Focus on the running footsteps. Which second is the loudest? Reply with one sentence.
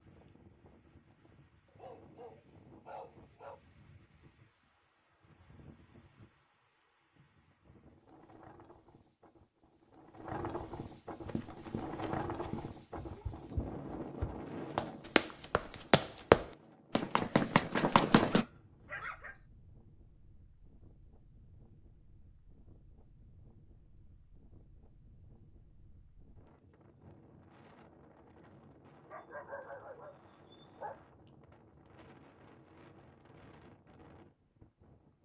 The loudest moment of the running footsteps is at 16 seconds.